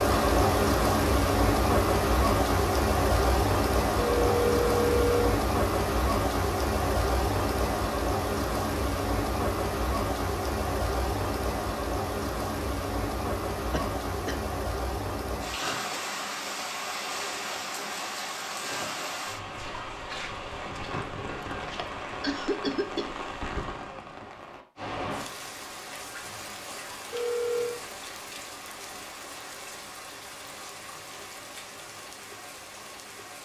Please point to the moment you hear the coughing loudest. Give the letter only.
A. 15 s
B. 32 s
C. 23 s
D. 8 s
C.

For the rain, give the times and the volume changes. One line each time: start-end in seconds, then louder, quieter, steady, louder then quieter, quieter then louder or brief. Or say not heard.
0.0-33.4 quieter.